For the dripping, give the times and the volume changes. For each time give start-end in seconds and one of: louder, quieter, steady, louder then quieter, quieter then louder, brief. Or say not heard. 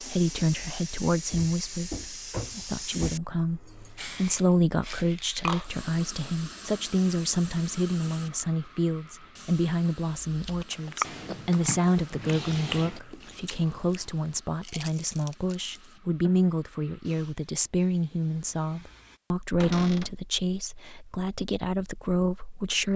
not heard.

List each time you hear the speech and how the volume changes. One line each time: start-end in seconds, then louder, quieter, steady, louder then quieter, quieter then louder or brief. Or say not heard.
0.0-22.9 steady.